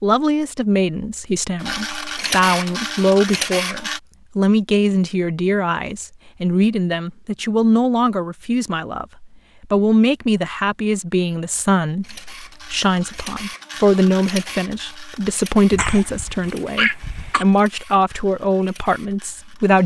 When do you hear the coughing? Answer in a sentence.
The coughing can be heard from 15.7 to 17.4 s.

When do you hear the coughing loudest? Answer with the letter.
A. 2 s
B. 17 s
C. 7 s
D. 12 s
B.